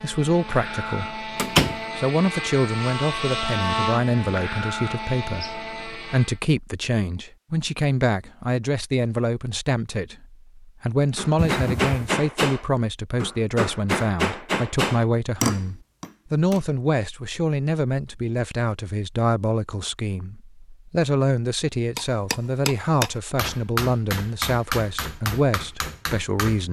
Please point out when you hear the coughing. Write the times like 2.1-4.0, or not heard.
11.3-12.1.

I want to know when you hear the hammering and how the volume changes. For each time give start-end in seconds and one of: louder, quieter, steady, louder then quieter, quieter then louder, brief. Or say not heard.
11.2-16.6 quieter then louder
21.9-26.6 quieter.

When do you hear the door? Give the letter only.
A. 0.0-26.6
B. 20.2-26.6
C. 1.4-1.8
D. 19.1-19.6
C.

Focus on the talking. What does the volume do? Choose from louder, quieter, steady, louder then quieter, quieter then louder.
steady.